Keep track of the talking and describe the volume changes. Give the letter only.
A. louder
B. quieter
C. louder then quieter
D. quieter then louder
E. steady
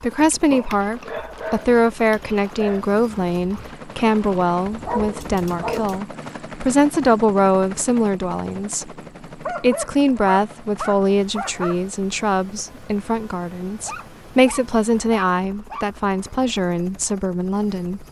E.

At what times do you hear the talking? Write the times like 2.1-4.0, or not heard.
0.0-8.9, 9.6-18.0.